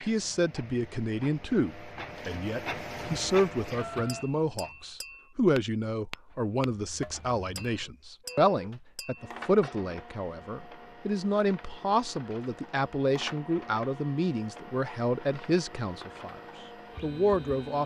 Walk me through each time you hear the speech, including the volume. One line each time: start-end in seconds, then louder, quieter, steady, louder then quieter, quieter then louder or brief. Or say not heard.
0.0-16.4 steady
17.0-17.8 brief.